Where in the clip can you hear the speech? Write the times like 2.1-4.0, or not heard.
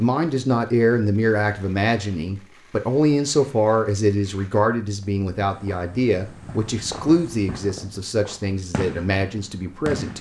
0.0-10.1.